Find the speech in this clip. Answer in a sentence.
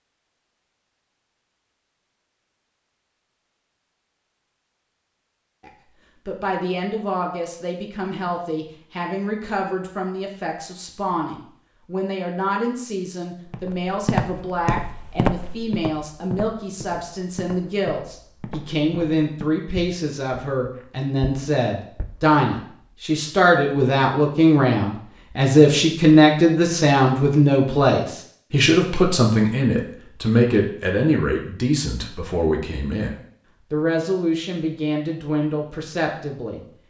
You can hear the speech from 5.6 to 36.6 s.